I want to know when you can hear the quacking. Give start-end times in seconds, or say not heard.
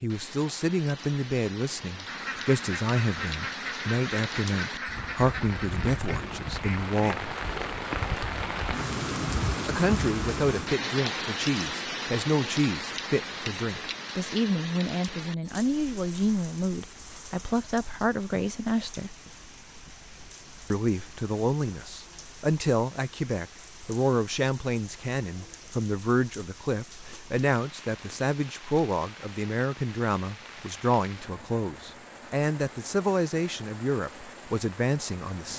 2.0-7.2.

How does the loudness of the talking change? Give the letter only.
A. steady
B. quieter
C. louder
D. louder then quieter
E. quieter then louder
A.